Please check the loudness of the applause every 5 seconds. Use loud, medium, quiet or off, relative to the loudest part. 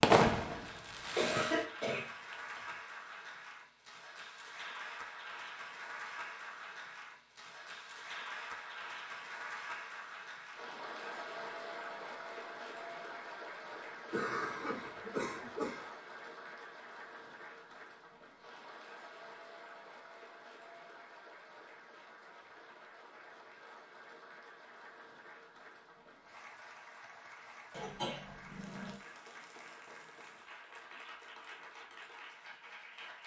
loud, loud, loud, medium, medium, medium, medium.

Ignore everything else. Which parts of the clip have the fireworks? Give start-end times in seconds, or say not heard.
0.0-1.6.